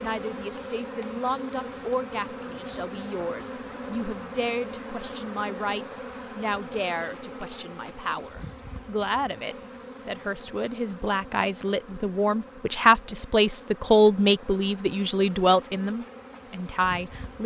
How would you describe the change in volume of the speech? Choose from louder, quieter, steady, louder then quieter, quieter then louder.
louder.